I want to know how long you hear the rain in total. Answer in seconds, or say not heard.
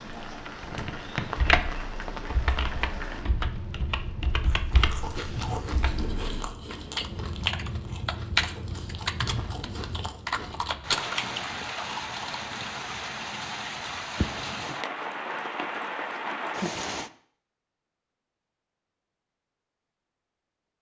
17 s.